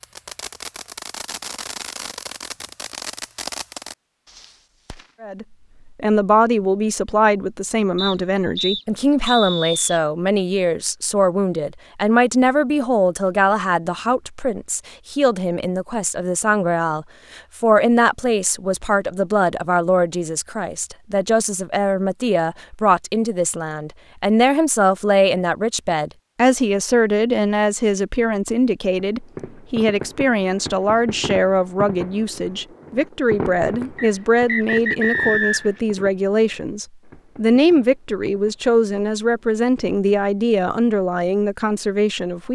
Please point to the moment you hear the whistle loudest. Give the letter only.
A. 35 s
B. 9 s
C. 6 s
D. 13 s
A.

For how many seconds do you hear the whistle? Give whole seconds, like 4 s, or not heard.
4 s.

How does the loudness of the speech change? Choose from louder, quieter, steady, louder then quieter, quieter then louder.
steady.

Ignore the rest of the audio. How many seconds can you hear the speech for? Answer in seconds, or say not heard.
37 s.